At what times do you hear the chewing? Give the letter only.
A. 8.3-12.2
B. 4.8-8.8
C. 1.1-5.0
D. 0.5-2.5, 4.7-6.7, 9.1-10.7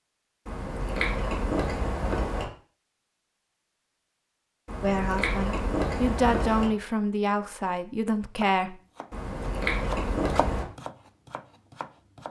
D.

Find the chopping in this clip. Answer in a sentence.
You can hear the chopping from 8.3 to 12.2 s.